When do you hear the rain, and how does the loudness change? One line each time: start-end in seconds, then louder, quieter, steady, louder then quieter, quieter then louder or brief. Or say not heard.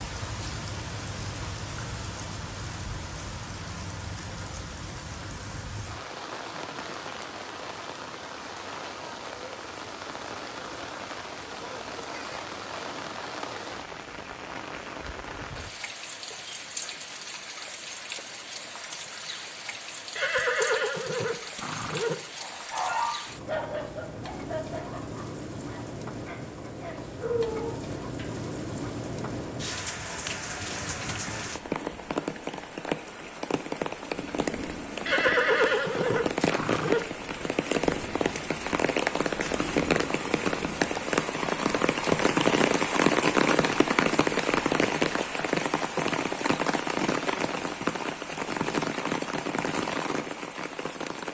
0.0-51.2 louder.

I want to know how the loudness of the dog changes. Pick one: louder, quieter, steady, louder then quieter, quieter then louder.
quieter then louder.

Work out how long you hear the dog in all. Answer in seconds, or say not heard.
6 s.